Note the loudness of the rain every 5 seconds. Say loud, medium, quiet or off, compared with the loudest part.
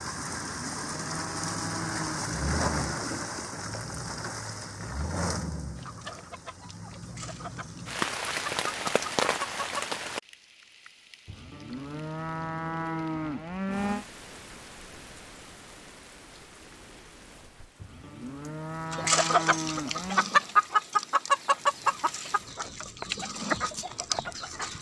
loud, loud, quiet, quiet, quiet.